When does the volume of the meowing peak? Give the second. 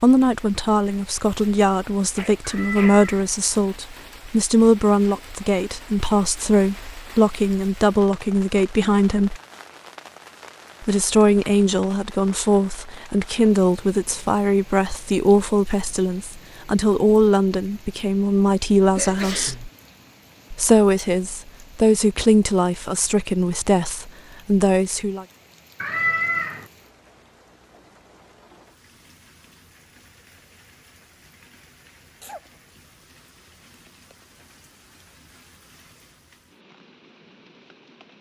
26 s.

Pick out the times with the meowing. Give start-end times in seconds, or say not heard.
2.4-3.3, 25.8-26.6.